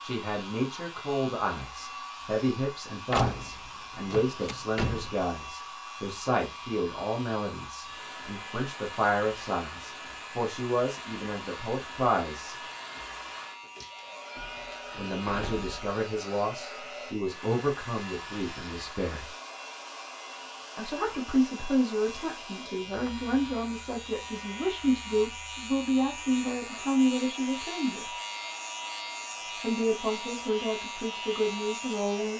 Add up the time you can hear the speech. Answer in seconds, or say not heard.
27 s.